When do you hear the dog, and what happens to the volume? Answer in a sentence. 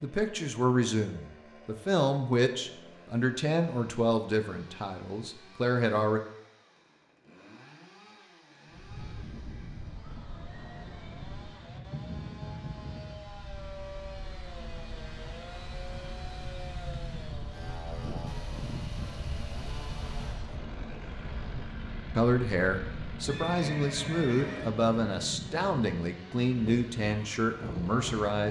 The dog can't be heard in this clip.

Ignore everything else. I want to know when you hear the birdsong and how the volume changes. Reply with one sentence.
The birdsong can't be heard in this clip.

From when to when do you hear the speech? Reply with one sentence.
You can hear the speech from 0.0 to 6.2 s and from 22.1 to 28.4 s.